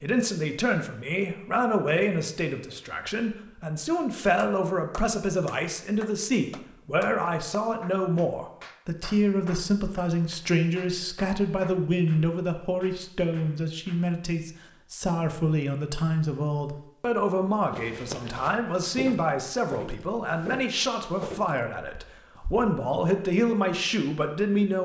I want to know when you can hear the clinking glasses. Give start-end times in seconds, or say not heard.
not heard.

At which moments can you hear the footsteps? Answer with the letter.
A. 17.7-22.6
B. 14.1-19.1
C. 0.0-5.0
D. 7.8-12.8
A.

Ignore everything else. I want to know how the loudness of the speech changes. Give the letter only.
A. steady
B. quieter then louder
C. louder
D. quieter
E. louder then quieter
A.